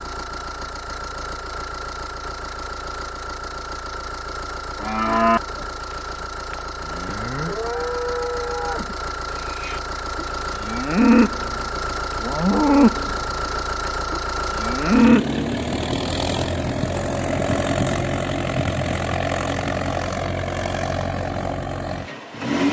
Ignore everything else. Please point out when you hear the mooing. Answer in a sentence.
The mooing can be heard from 4.8 to 5.7 s and from 6.5 to 15.4 s.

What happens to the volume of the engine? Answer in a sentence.
The loudness of the engine goes up.